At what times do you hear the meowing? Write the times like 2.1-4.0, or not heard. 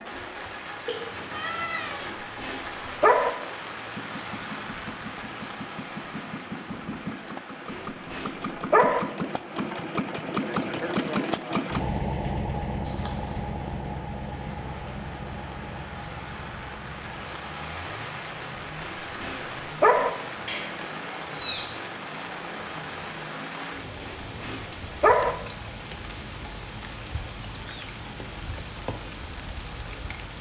0.8-2.1, 12.8-13.5, 20.4-21.6.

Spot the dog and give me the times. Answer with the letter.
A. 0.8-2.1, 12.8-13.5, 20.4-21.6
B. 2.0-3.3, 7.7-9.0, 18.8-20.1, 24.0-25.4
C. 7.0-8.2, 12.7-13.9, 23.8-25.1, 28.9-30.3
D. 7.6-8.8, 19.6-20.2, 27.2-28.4
B.